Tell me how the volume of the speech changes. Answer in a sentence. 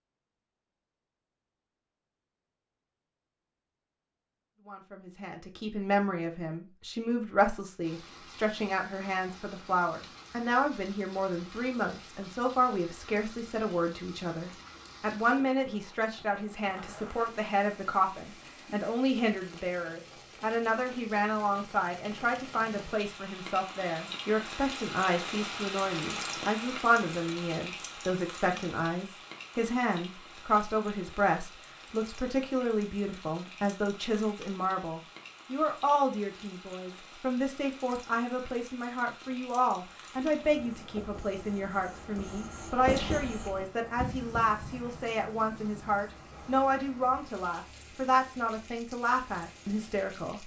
The loudness of the speech stays about the same.